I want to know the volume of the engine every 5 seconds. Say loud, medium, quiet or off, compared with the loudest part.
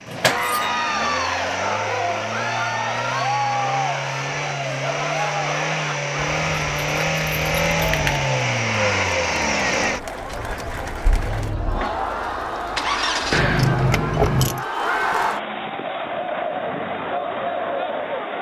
medium, loud, medium, off.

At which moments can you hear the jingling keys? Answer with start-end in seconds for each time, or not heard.
0.1-0.7, 6.4-8.2, 13.3-14.7.